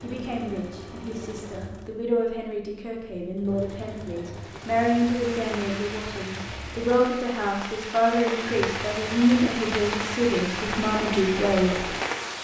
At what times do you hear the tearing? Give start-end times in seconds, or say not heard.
not heard.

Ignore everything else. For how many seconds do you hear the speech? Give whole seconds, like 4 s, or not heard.
12 s.